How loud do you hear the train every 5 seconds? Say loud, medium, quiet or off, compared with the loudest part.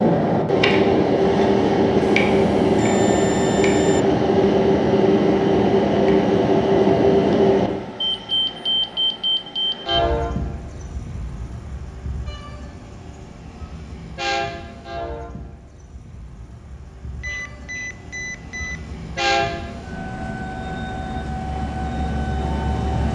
loud, loud, quiet, quiet, medium.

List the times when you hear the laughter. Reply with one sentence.
The laughter can't be heard in this clip.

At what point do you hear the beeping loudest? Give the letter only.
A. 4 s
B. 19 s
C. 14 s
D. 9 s
D.